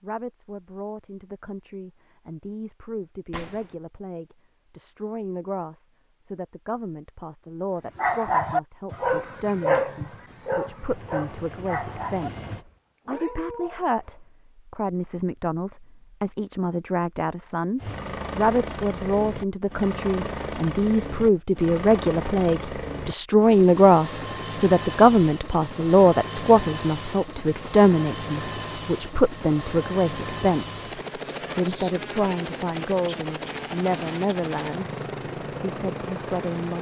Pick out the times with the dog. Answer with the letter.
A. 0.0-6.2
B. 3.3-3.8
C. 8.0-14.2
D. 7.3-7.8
C.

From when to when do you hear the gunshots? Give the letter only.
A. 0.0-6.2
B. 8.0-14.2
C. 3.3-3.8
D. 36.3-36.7
C.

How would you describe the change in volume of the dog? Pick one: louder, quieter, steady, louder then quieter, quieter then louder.
quieter.